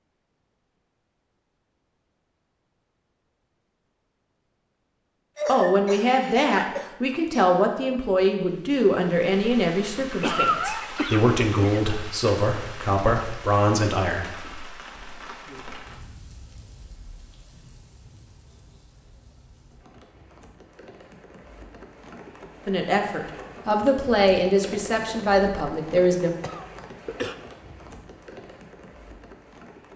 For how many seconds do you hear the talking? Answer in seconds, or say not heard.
13 s.